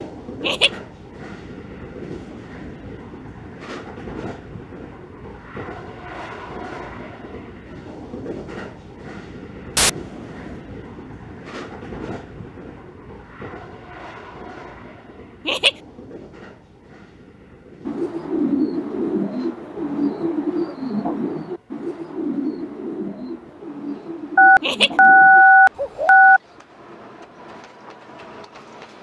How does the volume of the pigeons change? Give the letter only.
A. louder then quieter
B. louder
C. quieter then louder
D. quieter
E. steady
D.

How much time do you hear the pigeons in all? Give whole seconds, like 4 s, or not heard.
8 s.